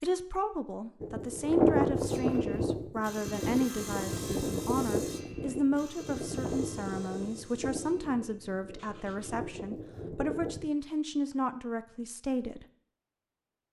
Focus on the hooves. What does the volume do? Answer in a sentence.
The volume of the hooves goes down.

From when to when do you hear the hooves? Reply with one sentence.
You can hear the hooves from 1.0 to 10.7 s.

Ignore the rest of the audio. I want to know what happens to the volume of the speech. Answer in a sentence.
The loudness of the speech stays about the same.